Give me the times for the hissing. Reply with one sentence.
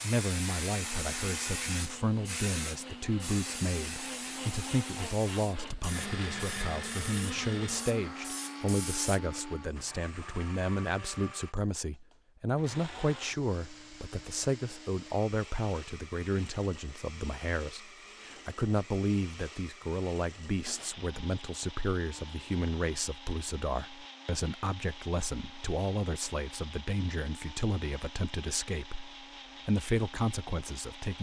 The hissing can be heard from 0.0 to 9.2 s.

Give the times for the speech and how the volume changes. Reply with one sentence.
The speech can be heard from 0.0 to 31.1 s, at a steady volume.